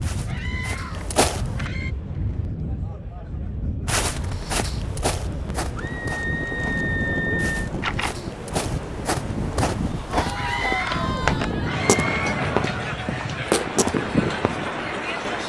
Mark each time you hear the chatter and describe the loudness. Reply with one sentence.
You can hear the chatter from 0.2 to 15.4 s, getting louder.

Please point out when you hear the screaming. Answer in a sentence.
The screaming can be heard from 0.2 to 1.9 s, from 5.8 to 7.7 s and from 10.3 to 12.3 s.